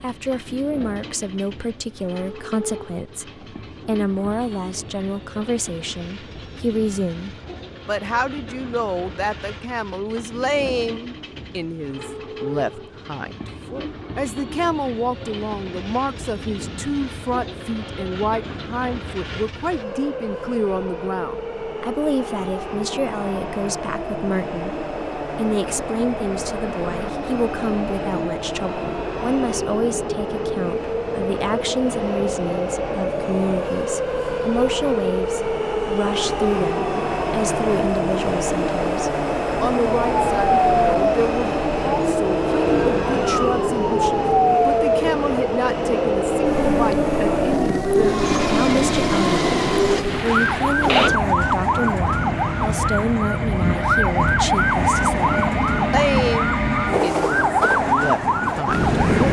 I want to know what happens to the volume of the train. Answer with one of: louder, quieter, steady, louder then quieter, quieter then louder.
louder.